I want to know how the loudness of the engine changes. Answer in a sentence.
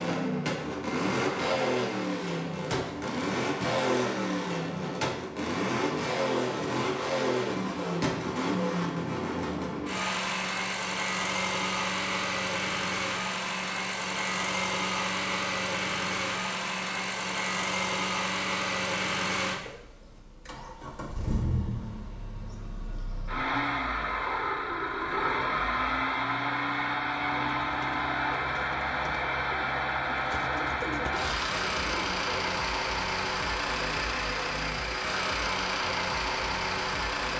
The volume of the engine stays about the same.